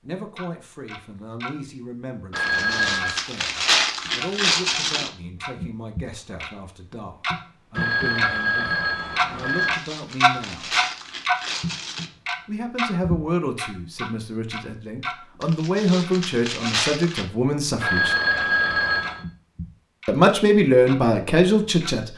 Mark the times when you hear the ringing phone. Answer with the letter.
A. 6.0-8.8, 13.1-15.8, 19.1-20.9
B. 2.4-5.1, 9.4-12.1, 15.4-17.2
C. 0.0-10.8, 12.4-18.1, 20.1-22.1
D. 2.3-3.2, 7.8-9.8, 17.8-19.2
D.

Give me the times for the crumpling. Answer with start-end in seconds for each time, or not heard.
2.4-5.1, 9.4-12.1, 15.4-17.2.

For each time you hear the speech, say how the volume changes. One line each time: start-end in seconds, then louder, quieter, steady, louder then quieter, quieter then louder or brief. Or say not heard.
0.0-10.8 steady
12.4-18.1 quieter then louder
20.1-22.1 brief.